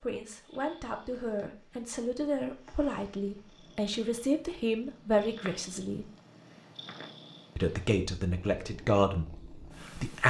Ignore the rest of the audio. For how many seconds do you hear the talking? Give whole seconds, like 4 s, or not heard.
9 s.